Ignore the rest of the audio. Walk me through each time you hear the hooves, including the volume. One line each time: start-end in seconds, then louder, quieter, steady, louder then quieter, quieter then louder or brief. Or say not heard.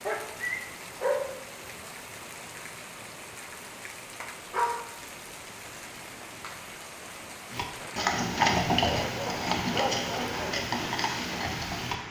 7.5-11.9 quieter.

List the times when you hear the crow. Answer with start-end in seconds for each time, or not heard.
not heard.